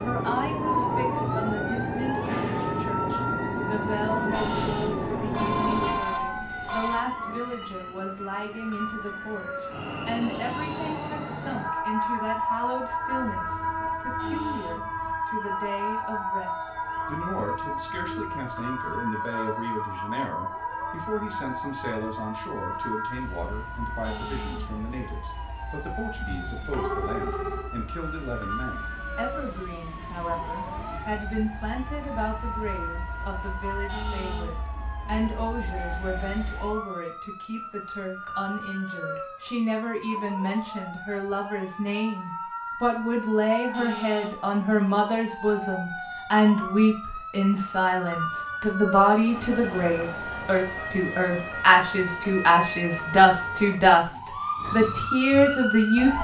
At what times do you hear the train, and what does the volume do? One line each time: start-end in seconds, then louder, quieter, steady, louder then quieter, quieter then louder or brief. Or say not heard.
0.0-36.9 quieter.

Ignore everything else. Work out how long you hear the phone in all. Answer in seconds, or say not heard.
5 s.